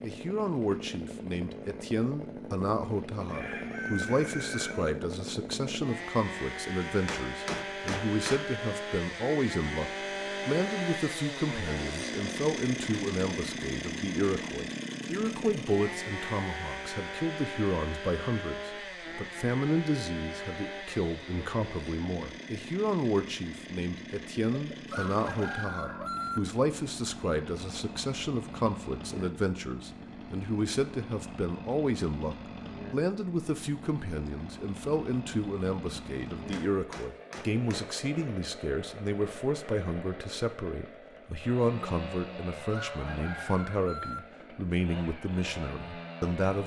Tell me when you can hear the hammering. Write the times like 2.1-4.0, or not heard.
6.8-8.4, 36.3-38.0.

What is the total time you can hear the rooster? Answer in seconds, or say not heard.
5 s.